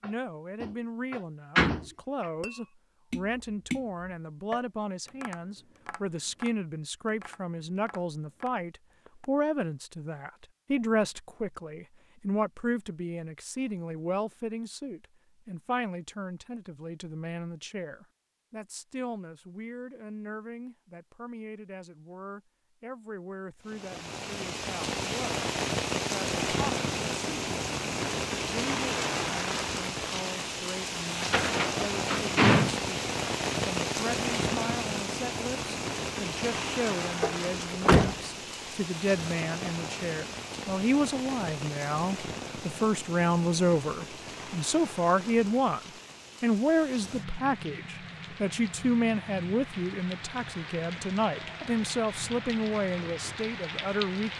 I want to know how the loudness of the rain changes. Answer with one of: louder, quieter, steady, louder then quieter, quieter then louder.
quieter.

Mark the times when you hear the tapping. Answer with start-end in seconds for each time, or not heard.
0.0-9.4.